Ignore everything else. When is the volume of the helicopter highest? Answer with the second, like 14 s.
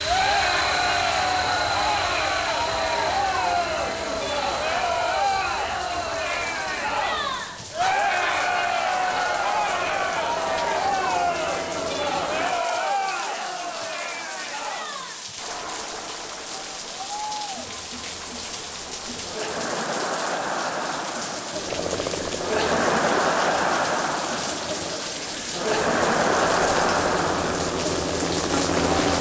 29 s.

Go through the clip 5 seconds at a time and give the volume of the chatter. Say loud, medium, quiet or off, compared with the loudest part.
loud, loud, loud, medium, loud, loud.